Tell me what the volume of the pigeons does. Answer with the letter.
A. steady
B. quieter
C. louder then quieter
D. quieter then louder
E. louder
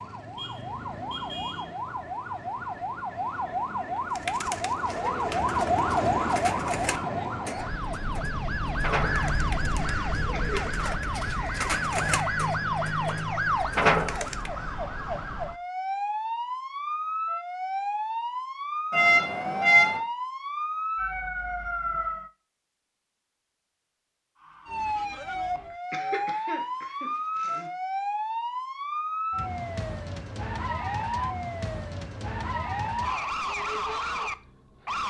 E.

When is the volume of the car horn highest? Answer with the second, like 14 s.
20 s.